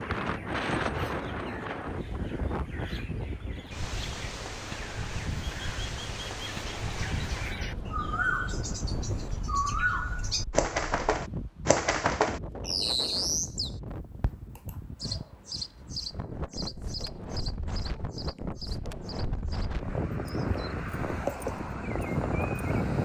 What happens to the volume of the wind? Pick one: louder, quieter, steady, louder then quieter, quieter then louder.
quieter then louder.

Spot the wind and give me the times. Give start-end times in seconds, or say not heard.
0.0-23.0.